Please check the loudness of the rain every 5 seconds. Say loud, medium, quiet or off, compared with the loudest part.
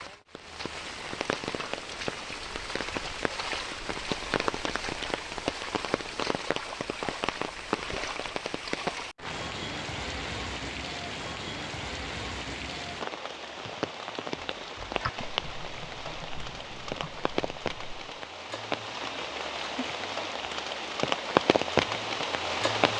medium, medium, medium, medium, loud.